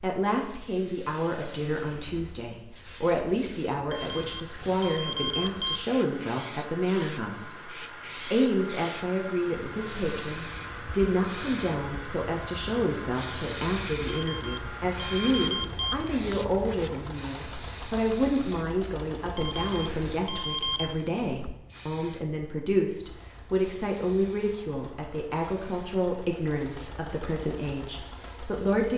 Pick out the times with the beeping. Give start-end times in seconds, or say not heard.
3.9-5.8, 14.1-15.9, 19.4-20.9.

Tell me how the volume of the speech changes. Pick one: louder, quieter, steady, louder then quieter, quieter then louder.
steady.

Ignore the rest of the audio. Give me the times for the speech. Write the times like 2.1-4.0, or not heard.
0.0-28.9.